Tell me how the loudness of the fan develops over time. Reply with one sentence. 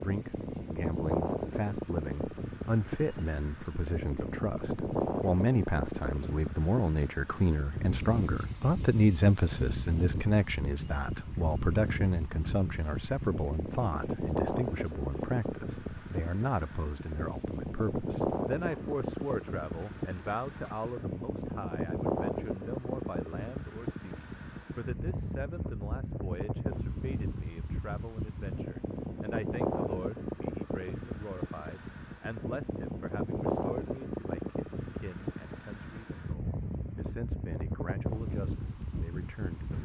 The loudness of the fan stays about the same.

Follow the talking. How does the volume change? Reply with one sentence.
The volume of the talking goes down.